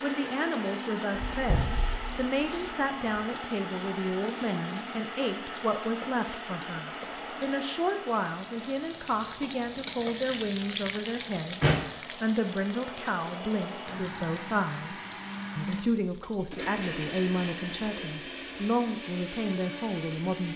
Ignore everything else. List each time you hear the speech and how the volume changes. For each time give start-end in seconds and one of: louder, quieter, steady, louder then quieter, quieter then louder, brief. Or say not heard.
0.0-20.5 steady.